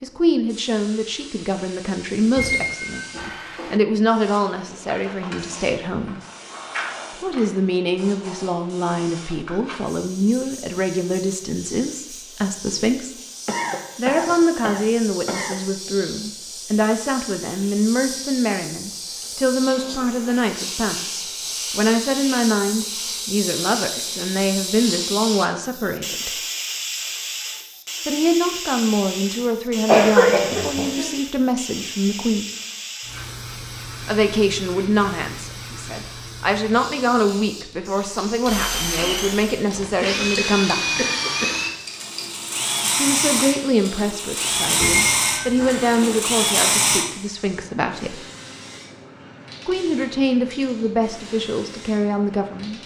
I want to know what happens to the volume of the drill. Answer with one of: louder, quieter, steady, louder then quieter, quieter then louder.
steady.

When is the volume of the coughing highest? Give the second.
30 s.